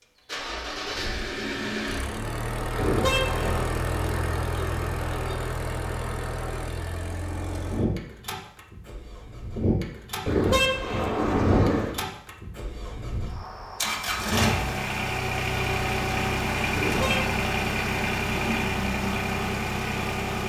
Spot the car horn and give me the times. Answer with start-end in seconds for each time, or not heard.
2.8-3.7, 10.2-11.9, 16.8-17.4.